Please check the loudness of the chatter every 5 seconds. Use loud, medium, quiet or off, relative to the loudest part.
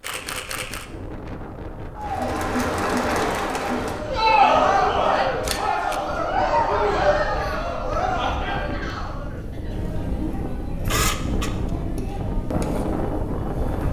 loud, loud, quiet.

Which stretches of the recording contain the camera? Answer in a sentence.
The camera can be heard from 0.0 to 0.8 s, from 5.5 to 6.0 s and from 10.8 to 11.7 s.